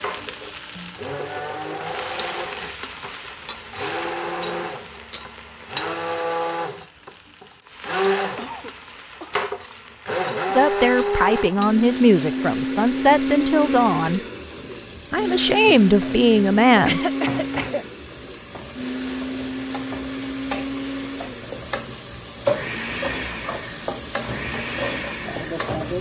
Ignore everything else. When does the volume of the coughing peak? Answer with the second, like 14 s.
17 s.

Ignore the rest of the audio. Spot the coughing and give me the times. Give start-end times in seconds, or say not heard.
7.8-9.4, 16.9-17.9.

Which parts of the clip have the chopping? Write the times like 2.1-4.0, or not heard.
not heard.